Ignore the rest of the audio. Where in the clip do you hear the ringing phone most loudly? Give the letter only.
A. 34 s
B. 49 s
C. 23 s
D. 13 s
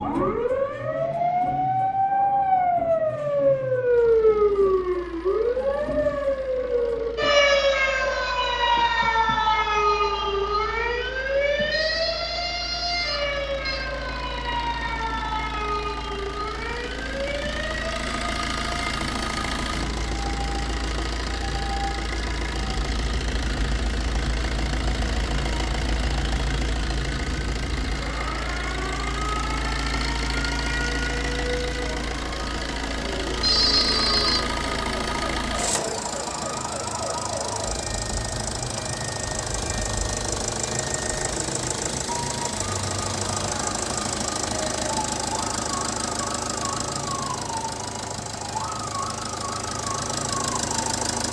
A.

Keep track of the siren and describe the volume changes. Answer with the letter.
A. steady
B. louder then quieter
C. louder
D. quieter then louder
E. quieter
E.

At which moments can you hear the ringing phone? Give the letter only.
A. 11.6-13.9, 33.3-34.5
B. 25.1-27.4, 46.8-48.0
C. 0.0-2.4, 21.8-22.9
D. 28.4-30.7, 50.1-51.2
A.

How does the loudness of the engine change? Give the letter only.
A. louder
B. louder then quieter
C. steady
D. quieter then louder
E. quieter
A.